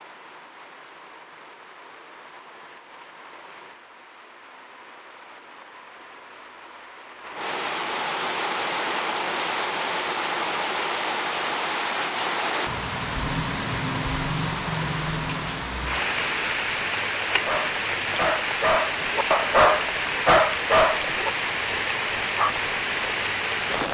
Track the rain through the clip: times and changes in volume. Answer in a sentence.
You can hear the rain from 0.0 to 23.8 s, getting louder.